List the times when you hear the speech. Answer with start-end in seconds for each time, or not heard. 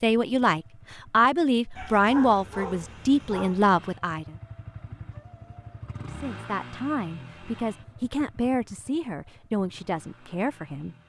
0.0-4.3, 6.1-10.9.